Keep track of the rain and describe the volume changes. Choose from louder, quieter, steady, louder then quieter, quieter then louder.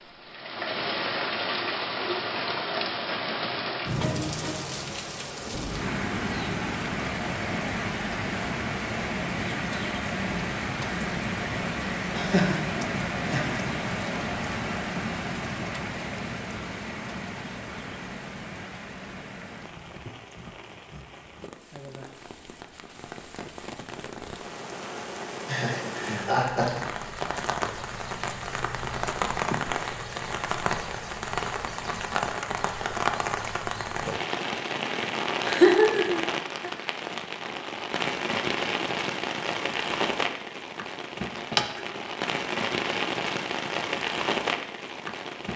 quieter then louder.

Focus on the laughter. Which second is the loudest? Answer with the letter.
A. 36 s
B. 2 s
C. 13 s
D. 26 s
A.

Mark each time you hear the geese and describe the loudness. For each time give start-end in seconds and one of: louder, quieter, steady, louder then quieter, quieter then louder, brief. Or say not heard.
not heard.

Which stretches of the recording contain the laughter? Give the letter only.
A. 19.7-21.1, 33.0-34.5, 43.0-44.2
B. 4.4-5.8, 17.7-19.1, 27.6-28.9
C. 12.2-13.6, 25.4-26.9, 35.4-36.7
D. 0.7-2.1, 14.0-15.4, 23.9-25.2
C.